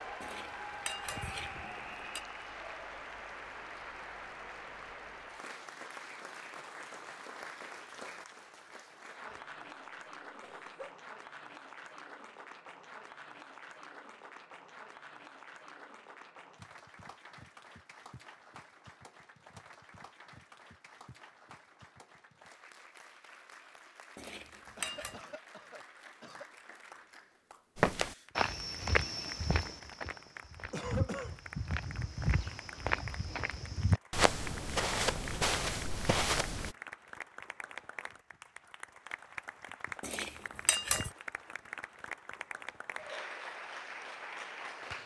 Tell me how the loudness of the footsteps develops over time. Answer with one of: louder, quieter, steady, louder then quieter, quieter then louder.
quieter then louder.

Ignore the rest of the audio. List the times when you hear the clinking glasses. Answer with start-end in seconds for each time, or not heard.
0.2-2.2, 24.1-25.2, 40.0-41.1.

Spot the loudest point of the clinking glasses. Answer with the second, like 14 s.
41 s.